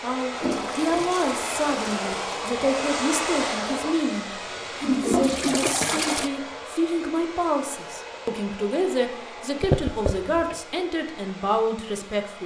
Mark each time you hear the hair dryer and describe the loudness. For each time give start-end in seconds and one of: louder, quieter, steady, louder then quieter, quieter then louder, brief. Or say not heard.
0.0-12.4 quieter.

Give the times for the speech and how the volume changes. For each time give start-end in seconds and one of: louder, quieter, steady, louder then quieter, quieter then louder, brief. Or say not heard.
0.0-12.4 steady.